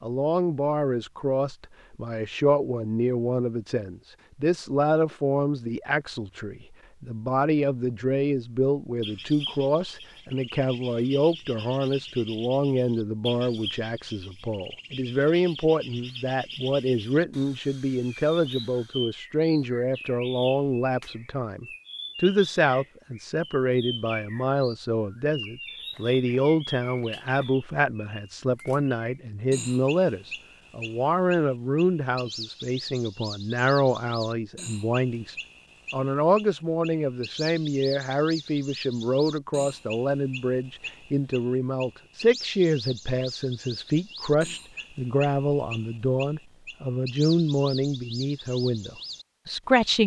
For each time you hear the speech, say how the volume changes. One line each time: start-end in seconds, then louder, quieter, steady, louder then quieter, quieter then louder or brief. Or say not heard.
0.0-50.0 steady.